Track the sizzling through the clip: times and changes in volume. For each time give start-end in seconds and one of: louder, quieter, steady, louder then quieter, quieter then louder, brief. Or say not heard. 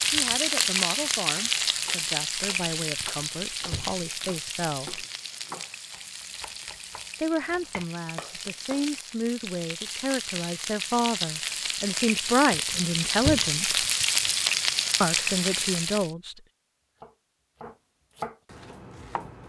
0.0-16.1 quieter then louder.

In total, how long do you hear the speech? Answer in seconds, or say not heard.
13 s.